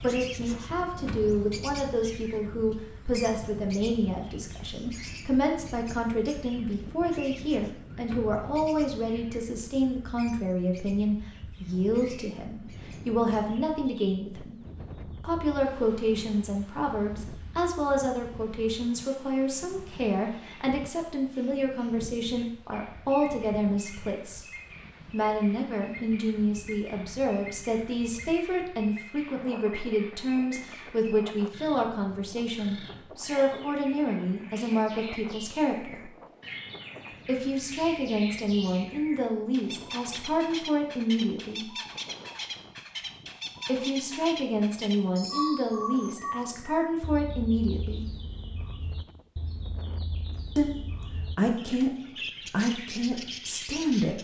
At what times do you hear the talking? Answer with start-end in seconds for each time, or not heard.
0.0-14.6, 15.2-24.4, 25.1-36.1, 37.2-41.7, 43.6-48.1, 50.5-54.2.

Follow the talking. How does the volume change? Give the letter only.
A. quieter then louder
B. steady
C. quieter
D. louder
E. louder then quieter
B.